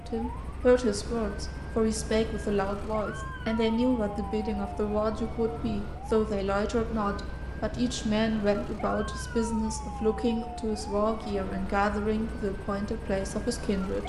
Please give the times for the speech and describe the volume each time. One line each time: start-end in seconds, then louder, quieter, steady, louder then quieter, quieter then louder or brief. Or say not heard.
0.0-14.0 steady.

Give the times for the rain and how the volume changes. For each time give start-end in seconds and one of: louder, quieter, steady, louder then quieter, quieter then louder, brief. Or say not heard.
not heard.